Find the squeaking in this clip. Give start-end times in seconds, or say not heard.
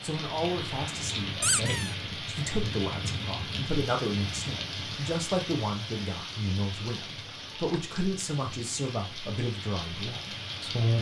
1.4-1.9, 6.9-7.8.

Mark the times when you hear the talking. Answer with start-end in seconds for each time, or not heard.
0.0-10.9.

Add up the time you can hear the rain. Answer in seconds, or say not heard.
11 s.